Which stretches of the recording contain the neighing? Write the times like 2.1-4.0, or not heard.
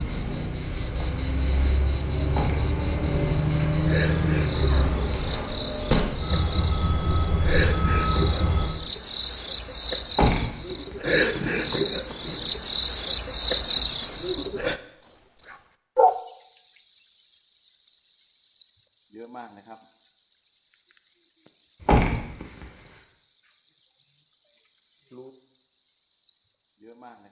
not heard.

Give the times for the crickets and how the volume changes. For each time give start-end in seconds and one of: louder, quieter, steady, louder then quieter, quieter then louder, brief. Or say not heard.
0.0-27.2 louder then quieter.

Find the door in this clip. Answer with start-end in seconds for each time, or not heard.
2.3-2.8, 10.1-11.7, 21.8-22.6.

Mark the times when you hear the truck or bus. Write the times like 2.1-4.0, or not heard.
0.0-8.7.